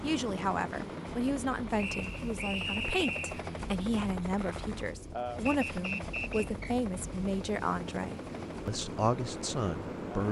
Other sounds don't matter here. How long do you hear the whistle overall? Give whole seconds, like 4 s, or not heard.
3 s.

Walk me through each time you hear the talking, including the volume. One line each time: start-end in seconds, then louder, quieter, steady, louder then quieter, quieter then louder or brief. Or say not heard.
0.0-10.2 steady.